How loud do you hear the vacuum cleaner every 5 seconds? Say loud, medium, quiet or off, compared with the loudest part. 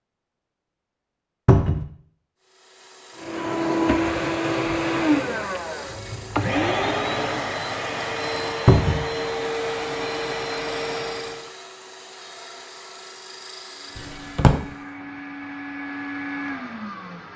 loud, loud, medium, medium.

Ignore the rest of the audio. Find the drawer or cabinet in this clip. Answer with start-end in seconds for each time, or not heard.
1.4-1.9, 8.7-9.1, 13.9-14.6.